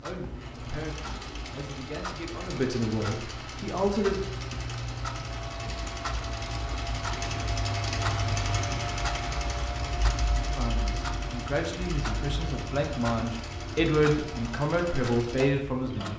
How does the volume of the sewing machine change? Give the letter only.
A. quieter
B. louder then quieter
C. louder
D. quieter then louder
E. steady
B.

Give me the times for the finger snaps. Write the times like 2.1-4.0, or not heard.
not heard.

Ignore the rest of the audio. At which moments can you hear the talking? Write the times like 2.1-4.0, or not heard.
0.0-4.2, 10.5-16.1.